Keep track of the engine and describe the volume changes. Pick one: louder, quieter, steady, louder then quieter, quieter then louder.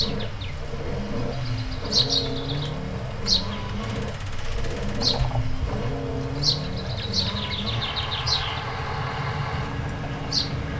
steady.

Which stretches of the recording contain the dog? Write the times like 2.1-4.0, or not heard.
not heard.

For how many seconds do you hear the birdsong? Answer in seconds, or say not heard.
11 s.